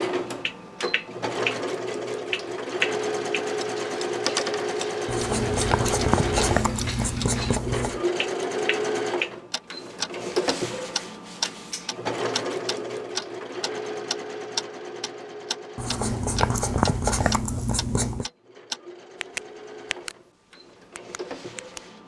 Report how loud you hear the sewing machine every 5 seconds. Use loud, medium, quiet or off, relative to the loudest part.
loud, loud, loud, quiet, quiet.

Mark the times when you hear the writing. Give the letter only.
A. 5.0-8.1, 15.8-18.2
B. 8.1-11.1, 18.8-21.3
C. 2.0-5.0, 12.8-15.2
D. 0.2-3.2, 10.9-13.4
A.